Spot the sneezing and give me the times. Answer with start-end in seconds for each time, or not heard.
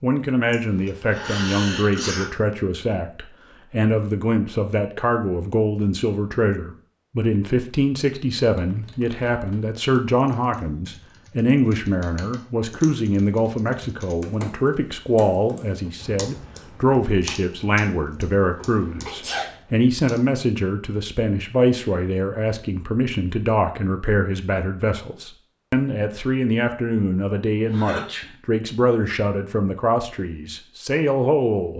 0.5-2.3, 18.6-19.6, 27.6-28.2.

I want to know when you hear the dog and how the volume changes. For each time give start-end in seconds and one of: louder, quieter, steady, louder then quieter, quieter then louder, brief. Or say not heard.
not heard.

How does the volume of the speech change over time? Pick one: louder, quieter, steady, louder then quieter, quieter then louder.
steady.